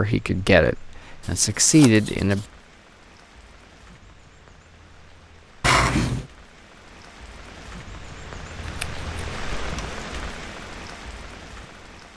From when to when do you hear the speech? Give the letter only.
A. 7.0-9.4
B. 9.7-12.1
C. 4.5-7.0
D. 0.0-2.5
D.